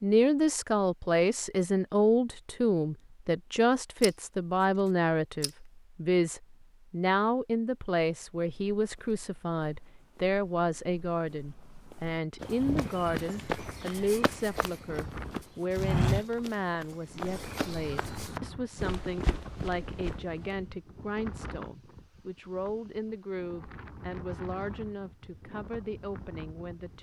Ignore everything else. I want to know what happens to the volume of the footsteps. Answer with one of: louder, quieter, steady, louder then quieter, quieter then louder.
louder then quieter.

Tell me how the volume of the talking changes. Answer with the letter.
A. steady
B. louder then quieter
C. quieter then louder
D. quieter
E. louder
D.